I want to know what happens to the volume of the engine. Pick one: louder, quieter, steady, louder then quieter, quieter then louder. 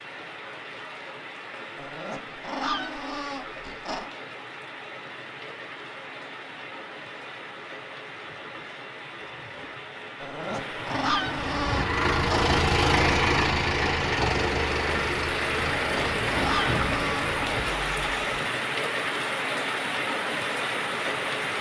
quieter.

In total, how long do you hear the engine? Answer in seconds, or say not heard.
7 s.